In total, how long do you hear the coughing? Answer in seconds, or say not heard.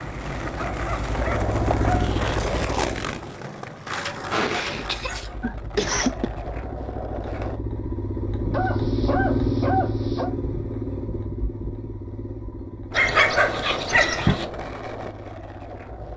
2 s.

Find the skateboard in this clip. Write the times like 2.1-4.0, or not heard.
0.0-7.6, 12.9-16.1.